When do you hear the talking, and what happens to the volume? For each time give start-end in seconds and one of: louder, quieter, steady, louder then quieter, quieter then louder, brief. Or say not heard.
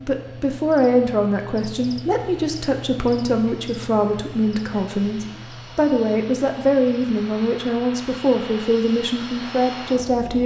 0.0-10.4 steady.